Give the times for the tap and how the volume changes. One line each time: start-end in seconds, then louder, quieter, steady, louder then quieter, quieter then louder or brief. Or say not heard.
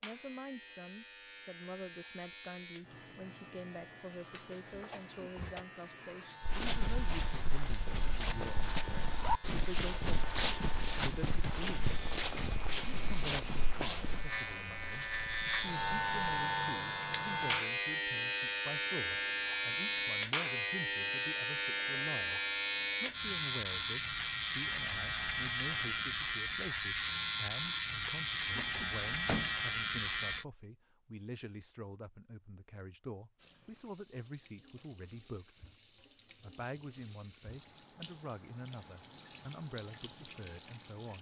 33.4-41.1 louder.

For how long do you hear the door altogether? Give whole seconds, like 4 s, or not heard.
2 s.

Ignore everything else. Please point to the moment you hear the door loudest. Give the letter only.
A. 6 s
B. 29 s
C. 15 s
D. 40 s
B.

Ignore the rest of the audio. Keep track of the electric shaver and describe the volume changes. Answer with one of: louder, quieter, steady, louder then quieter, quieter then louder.
louder.